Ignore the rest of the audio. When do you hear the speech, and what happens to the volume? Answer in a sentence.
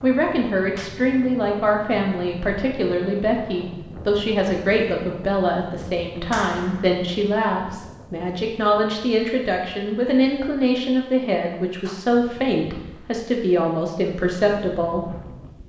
The speech can be heard from 0.0 to 15.2 s, at a steady volume.